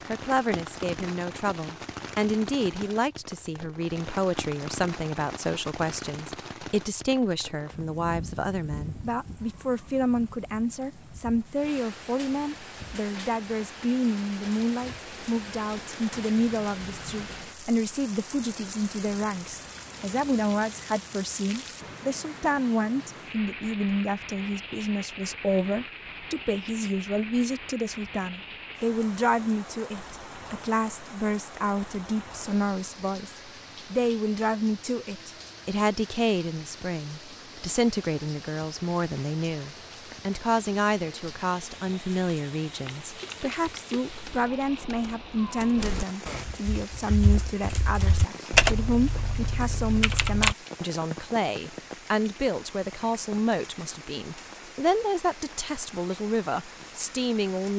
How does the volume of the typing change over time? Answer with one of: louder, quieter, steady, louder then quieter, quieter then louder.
louder then quieter.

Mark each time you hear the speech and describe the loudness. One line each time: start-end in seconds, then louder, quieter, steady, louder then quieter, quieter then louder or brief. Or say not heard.
0.1-57.7 steady.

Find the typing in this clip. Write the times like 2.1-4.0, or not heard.
42.8-50.5.